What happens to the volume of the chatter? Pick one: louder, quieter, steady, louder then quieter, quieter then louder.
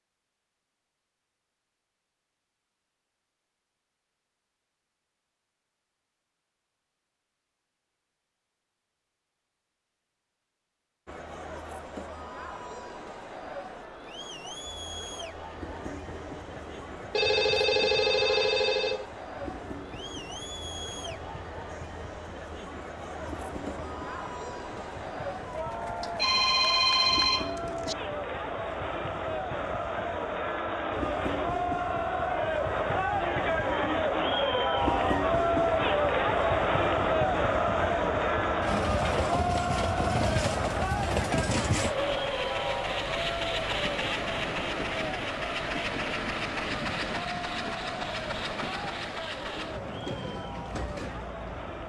louder then quieter.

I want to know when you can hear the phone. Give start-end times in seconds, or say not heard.
17.1-19.1, 26.0-27.9.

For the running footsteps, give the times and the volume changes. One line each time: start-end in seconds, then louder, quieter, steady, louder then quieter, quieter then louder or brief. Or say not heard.
not heard.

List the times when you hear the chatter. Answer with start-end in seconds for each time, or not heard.
11.1-51.8.